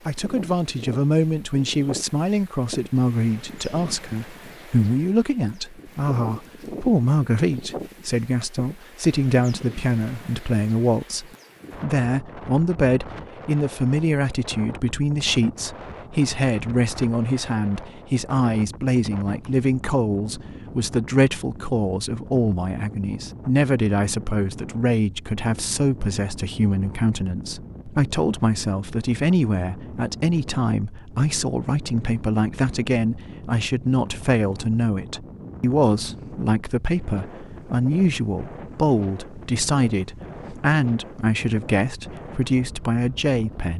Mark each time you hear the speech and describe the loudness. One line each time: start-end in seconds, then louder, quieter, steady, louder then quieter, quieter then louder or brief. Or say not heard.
0.1-43.7 steady.